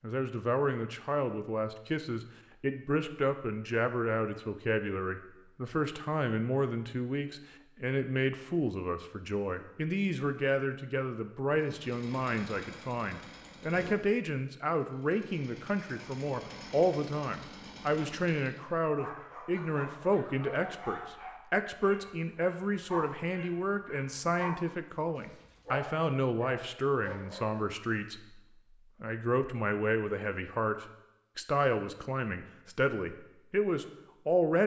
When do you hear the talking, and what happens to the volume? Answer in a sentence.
You can hear the talking from 0.0 to 34.6 s, at a steady volume.